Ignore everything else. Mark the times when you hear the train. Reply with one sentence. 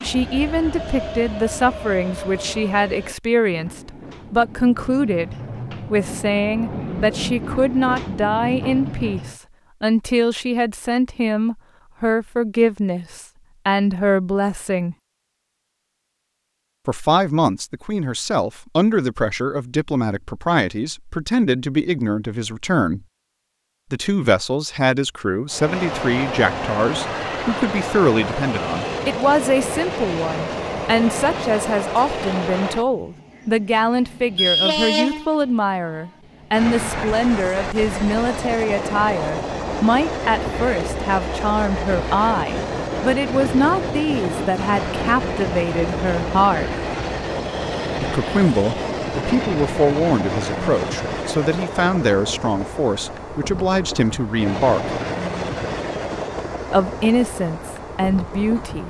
You can hear the train from 0.0 to 9.4 s and from 25.5 to 58.8 s.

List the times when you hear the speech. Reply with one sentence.
You can hear the speech from 0.0 to 14.9 s, from 16.9 to 23.0 s, from 23.9 to 46.7 s, from 48.0 to 55.0 s and from 56.7 to 58.8 s.